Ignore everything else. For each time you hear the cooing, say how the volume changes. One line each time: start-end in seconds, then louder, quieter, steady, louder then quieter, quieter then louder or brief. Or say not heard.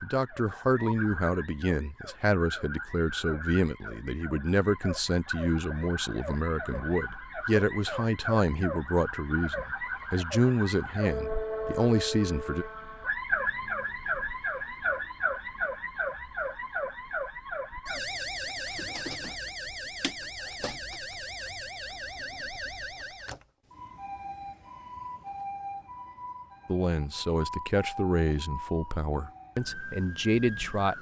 not heard.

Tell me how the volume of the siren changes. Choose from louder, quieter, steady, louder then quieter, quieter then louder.
louder then quieter.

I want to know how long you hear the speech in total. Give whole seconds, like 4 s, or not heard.
17 s.